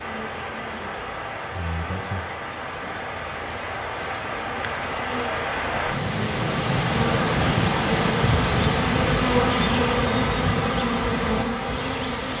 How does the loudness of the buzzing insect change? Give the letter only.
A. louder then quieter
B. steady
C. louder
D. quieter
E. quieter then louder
C.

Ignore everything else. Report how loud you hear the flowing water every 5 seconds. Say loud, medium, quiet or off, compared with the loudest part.
medium, loud, medium.